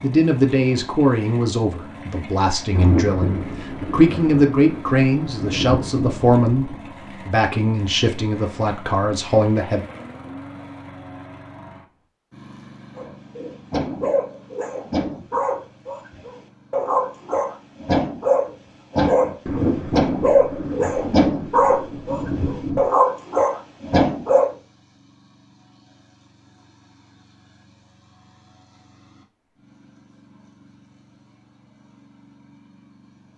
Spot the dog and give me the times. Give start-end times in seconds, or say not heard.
12.9-24.5.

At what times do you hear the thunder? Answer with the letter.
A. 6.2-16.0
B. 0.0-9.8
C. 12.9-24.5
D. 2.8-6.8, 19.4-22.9
D.